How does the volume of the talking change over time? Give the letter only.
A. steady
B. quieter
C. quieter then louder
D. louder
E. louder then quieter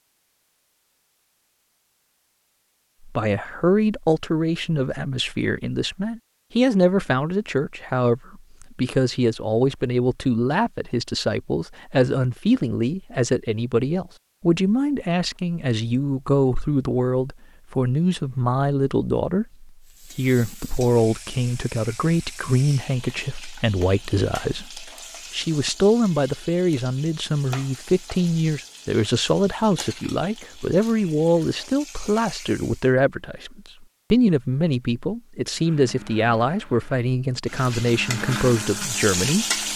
A.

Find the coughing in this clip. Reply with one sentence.
The coughing can't be heard in this clip.